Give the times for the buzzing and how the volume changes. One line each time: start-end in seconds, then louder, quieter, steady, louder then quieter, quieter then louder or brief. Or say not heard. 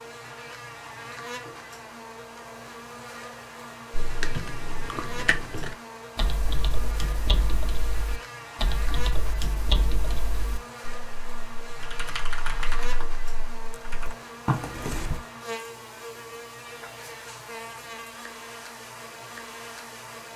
0.0-20.3 steady.